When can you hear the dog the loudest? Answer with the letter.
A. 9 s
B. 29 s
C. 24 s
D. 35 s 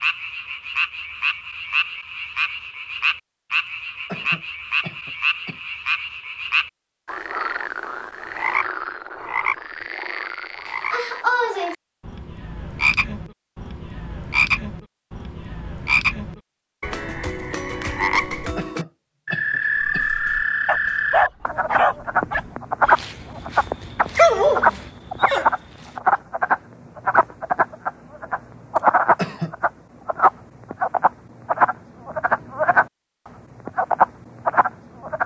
C.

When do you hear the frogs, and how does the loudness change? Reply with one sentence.
The frogs can be heard from 0.0 to 32.9 s, getting louder; and briefly from 33.6 to 35.2 s.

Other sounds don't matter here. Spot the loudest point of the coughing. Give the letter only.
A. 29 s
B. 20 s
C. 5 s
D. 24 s
A.